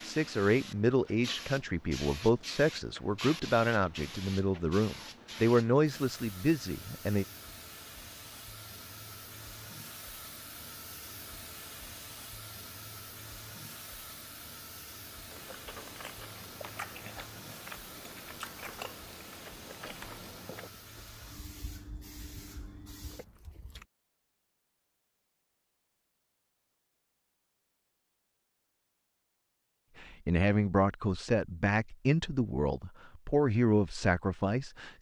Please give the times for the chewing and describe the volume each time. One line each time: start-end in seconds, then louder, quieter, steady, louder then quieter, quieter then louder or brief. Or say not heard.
15.3-23.9 quieter.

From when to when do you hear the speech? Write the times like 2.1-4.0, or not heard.
0.0-7.2, 30.0-34.9.